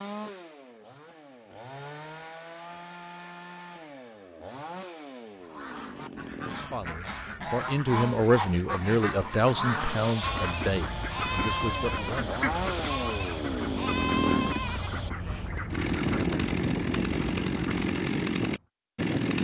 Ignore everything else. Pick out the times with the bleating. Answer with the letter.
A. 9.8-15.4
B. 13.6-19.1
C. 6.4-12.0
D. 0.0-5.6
A.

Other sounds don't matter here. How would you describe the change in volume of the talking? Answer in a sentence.
The loudness of the talking goes up, then down.